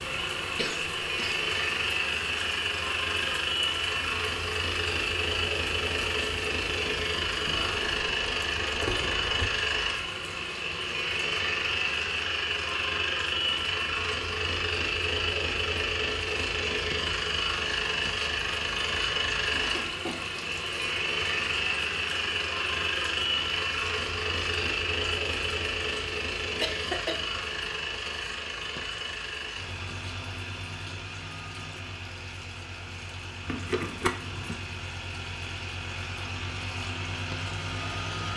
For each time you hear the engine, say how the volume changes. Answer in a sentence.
You can hear the engine from 0.0 to 38.3 s, getting quieter.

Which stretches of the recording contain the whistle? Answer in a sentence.
The whistle can't be heard in this clip.